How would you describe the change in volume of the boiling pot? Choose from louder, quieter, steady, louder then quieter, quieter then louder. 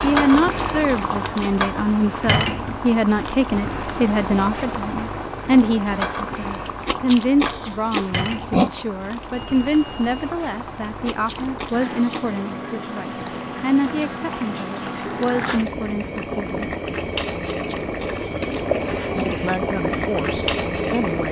quieter then louder.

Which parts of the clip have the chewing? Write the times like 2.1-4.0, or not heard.
0.3-1.6, 6.7-8.8, 10.8-12.5, 17.4-19.4.